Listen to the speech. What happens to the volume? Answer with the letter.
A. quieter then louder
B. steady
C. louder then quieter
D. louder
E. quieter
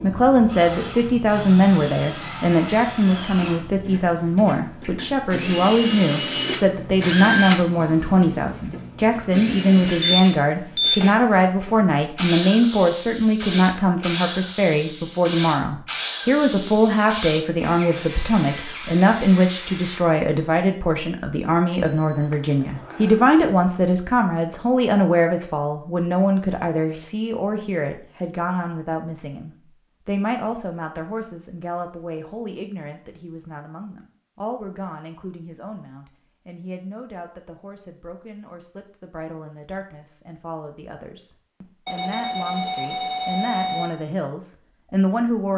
E.